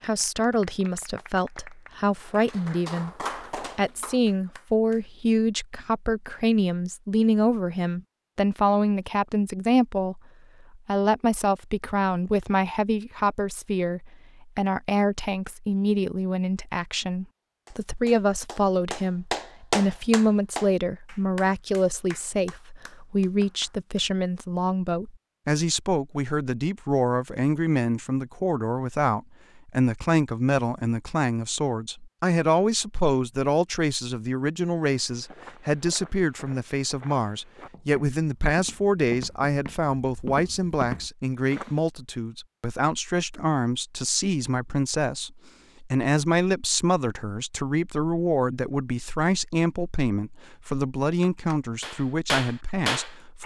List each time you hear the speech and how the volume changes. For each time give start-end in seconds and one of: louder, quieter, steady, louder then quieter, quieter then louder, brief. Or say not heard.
0.0-53.4 steady.